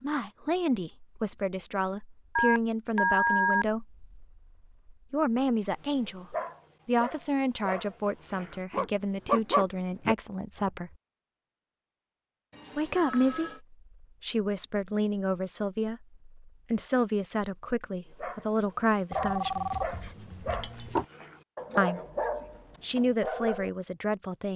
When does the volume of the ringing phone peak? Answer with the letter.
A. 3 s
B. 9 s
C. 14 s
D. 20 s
A.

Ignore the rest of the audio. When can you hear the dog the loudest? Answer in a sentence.
The loudest moment of the dog is at 9 seconds.